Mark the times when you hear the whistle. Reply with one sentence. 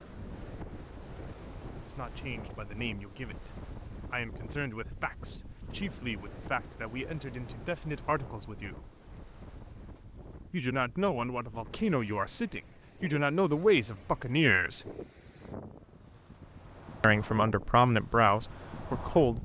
The whistle can't be heard in this clip.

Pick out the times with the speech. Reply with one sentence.
You can hear the speech from 1.9 to 8.8 s, from 10.5 to 14.8 s and from 17.0 to 19.3 s.